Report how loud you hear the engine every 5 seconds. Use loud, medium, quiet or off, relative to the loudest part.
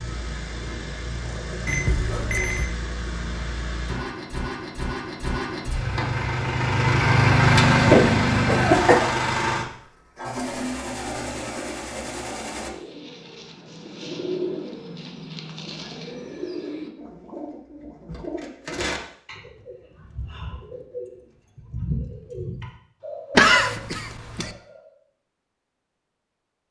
quiet, loud, medium, off, off, off.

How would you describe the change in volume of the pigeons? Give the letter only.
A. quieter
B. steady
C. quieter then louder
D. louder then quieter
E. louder
B.